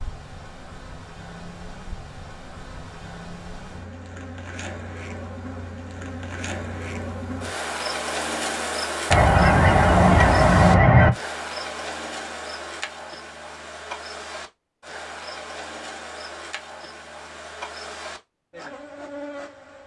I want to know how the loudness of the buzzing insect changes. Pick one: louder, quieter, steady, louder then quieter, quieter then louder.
louder then quieter.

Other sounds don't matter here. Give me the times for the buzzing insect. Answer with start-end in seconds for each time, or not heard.
0.0-19.8.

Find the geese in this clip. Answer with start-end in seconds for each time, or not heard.
9.1-11.1.